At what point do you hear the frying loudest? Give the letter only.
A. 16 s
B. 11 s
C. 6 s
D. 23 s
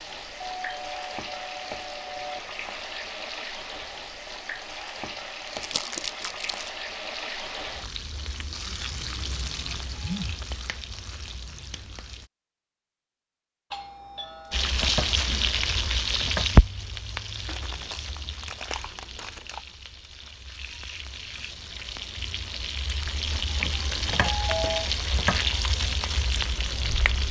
A.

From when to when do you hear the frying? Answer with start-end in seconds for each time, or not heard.
0.0-12.3, 14.5-27.2.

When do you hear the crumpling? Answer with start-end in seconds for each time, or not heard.
5.5-6.7, 17.4-19.6.